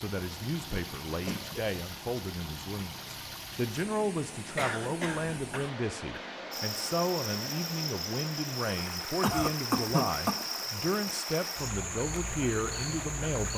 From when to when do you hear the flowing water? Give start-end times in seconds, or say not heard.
0.0-13.5.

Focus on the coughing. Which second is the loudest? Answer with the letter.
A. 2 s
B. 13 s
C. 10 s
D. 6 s
C.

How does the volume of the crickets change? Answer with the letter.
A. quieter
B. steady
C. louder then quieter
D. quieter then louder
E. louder
B.